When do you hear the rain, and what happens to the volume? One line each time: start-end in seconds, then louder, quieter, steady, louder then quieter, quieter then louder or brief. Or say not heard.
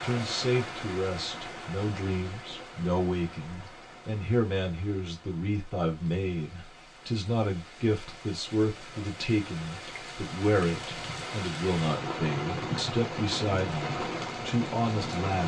0.0-15.4 quieter then louder.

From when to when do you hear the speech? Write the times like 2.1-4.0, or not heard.
0.0-15.4.